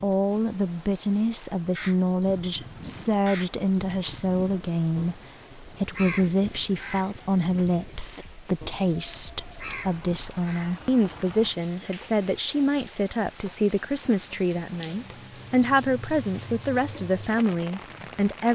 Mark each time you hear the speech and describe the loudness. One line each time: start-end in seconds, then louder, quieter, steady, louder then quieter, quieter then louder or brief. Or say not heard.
0.0-18.4 steady.